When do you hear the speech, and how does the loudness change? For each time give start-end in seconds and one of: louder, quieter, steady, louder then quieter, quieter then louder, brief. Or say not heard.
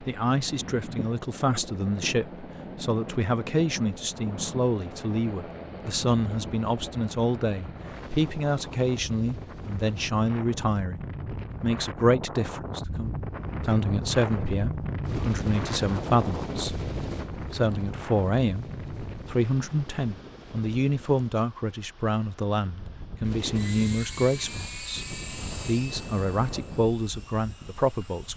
0.0-28.3 steady.